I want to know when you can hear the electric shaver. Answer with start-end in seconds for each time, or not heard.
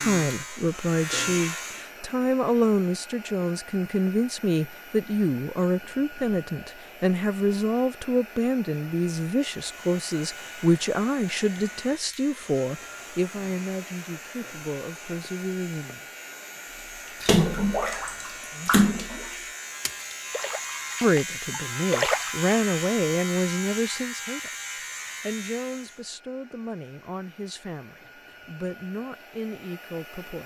0.0-1.9, 9.5-26.1.